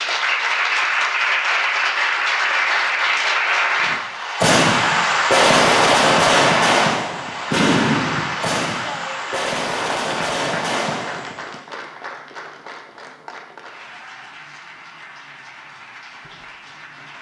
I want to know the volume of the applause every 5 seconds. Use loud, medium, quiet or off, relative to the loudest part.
loud, loud, quiet, quiet.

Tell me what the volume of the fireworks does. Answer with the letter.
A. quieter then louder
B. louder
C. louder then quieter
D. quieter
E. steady
D.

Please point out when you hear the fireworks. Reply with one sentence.
The fireworks can be heard from 3.9 to 11.6 s.